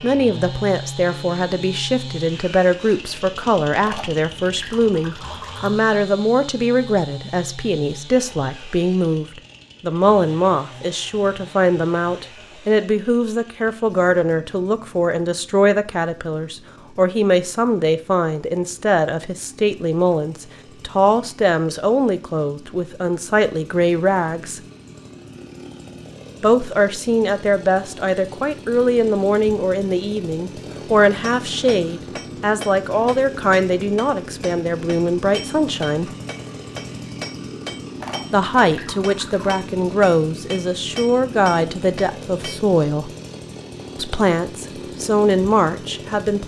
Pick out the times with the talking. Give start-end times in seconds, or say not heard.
0.0-24.6, 26.4-36.1, 38.3-43.1, 44.0-46.4.